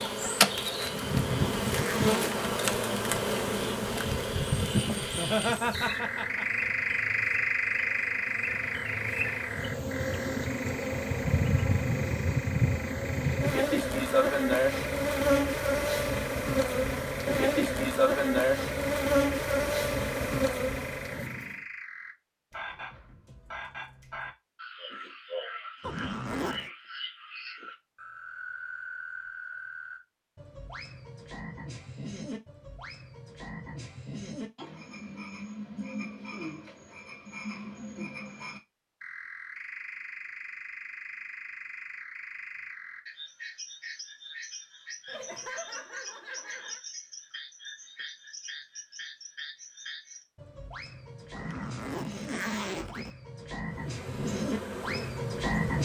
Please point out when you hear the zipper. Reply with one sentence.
You can hear the zipper from 0.8 to 2.5 s, from 25.8 to 26.7 s and from 51.4 to 53.1 s.